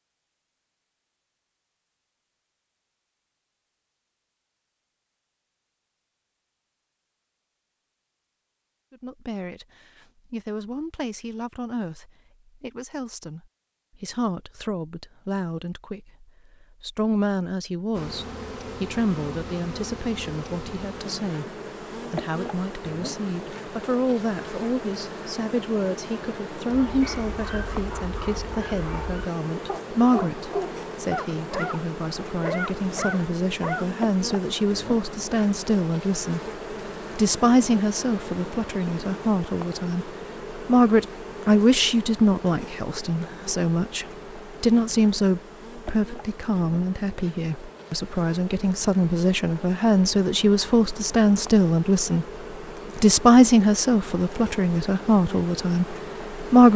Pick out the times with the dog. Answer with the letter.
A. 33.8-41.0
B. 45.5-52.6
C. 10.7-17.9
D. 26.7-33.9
D.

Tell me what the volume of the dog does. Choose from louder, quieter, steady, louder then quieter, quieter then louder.
louder.